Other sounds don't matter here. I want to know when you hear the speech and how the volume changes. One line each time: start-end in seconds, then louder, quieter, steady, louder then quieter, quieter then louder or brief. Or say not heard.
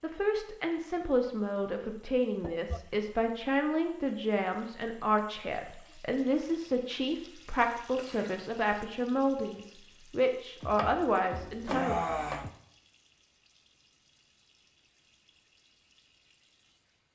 0.0-11.9 steady.